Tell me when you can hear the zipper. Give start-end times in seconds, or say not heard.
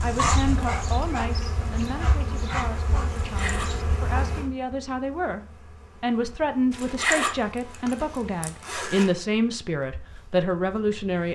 3.2-3.8, 6.7-9.1.